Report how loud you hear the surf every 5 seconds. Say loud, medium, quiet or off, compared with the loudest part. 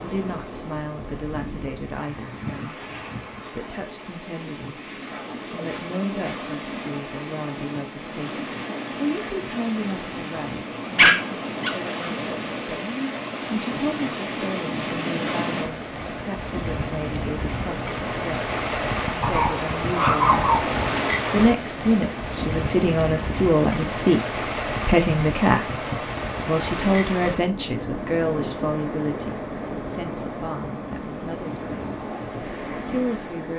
medium, medium, loud, loud, loud, loud, medium.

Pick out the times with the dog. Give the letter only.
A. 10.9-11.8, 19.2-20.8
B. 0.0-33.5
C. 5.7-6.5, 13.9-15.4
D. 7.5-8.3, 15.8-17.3
A.